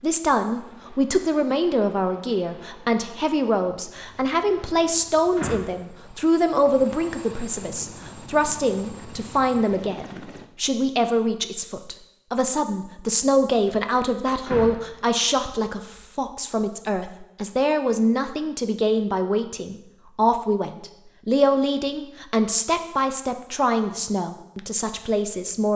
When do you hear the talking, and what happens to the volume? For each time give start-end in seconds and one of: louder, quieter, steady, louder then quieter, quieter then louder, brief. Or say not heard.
0.0-25.7 steady.